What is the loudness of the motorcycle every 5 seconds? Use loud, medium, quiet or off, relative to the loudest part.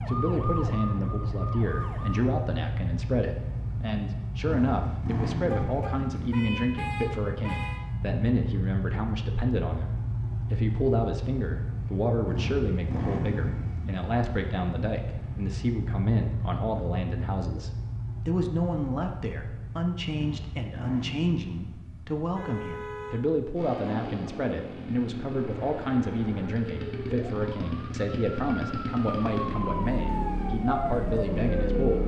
loud, loud, loud, loud, medium, loud, loud.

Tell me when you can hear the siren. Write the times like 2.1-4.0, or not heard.
0.0-2.4, 25.4-32.0.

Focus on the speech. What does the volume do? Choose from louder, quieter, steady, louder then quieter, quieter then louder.
steady.